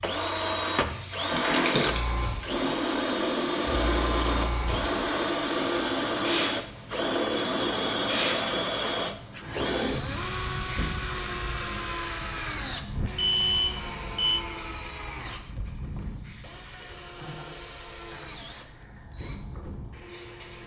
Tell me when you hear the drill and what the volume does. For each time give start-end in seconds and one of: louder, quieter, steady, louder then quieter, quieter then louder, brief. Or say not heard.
0.0-20.6 quieter.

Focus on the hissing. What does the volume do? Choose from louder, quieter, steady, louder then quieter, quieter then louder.
quieter.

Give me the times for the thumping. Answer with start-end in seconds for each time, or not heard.
0.8-1.2.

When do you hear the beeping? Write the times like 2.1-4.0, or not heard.
13.2-14.4.